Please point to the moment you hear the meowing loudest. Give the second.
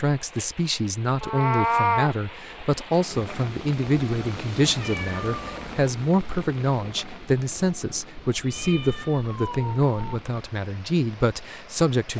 2 s.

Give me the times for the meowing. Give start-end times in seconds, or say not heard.
1.2-2.1, 4.6-5.8, 8.3-10.2.